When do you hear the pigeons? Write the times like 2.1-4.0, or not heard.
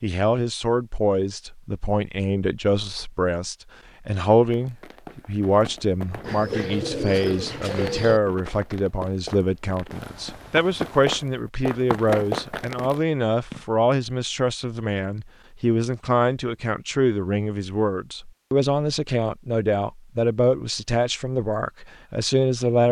6.2-8.2.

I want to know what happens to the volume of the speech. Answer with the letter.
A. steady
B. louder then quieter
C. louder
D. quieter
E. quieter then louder
A.